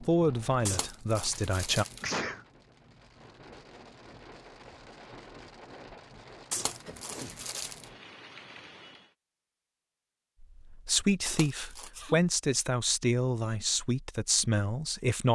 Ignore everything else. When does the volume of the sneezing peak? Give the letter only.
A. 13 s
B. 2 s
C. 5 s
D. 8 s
B.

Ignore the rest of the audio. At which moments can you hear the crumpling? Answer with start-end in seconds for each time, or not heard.
0.7-2.1, 6.5-7.9, 11.2-11.9.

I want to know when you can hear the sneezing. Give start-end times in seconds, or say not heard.
2.0-2.5, 6.8-7.4, 11.8-12.2.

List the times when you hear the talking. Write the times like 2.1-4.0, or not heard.
0.0-1.9, 10.4-15.3.